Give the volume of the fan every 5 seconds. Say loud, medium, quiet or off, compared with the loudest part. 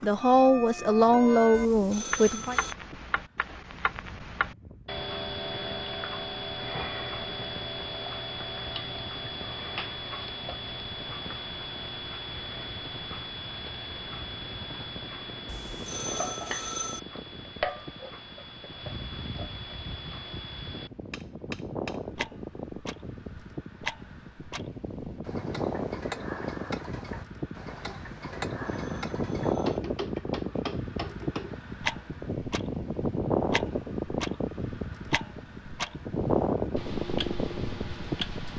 quiet, quiet, quiet, quiet, medium, loud, loud, loud.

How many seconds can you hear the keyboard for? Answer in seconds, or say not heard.
not heard.